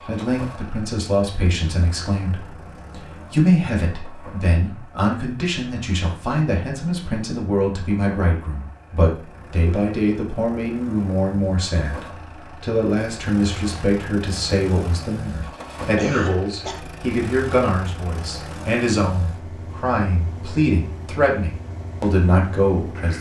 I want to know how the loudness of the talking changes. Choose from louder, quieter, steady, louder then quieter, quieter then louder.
steady.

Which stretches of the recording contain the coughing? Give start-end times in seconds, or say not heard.
15.9-16.8.